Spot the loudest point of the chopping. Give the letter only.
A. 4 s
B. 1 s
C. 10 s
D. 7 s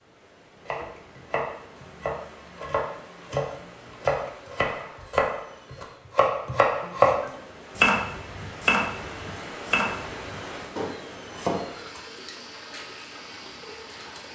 D.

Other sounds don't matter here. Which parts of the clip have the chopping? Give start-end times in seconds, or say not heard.
0.7-12.0.